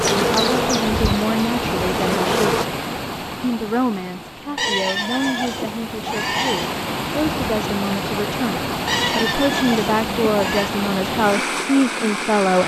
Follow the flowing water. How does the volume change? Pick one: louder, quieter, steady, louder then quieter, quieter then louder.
quieter then louder.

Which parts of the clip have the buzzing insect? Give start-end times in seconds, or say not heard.
0.0-2.6.